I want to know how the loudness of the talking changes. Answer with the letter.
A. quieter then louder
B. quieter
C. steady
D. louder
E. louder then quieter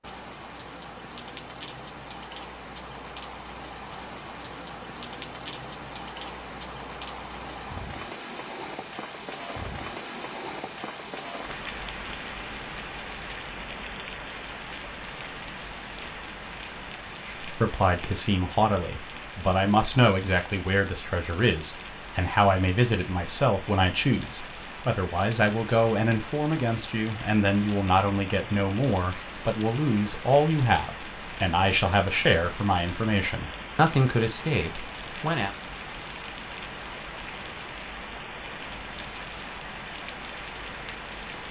C.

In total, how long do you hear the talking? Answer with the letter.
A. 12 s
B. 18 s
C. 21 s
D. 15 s
B.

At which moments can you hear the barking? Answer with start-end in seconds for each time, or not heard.
not heard.